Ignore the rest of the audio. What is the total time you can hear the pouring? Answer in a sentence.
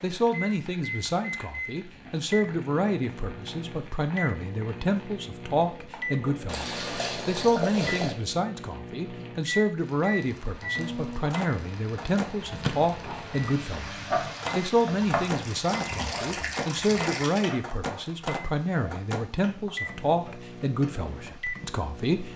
You can hear the pouring for 4 seconds altogether.